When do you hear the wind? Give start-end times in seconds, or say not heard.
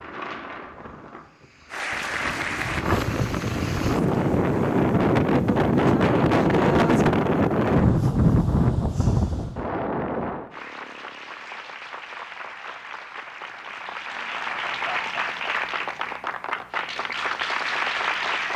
0.0-10.5.